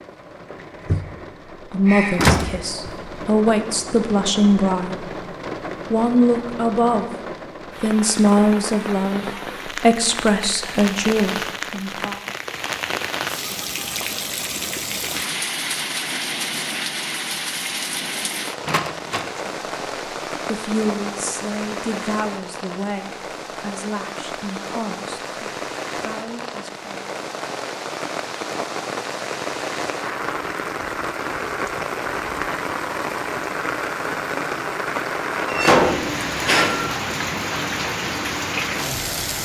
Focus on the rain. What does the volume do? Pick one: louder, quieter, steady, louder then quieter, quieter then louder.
louder.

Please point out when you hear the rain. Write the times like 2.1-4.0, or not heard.
0.0-39.4.